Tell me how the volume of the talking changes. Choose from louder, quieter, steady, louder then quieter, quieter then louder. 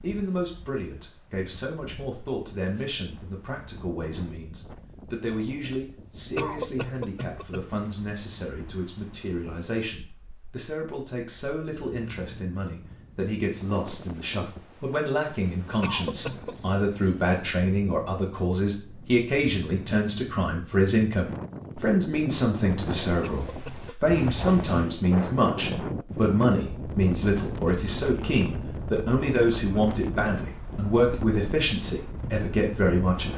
louder.